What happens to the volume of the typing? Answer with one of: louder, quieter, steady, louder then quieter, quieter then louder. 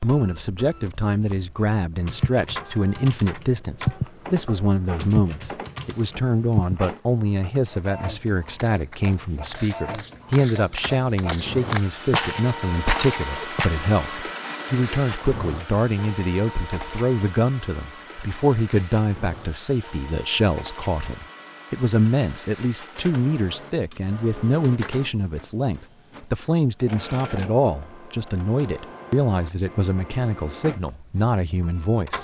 louder then quieter.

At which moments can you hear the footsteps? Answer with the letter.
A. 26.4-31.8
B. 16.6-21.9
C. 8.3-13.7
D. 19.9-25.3
C.